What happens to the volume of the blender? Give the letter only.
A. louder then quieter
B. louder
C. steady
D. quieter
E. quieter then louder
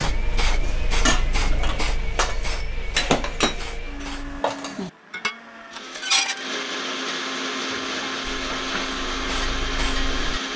B.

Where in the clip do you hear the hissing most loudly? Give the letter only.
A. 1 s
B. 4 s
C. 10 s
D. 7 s
A.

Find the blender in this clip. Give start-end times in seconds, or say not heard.
0.0-10.5.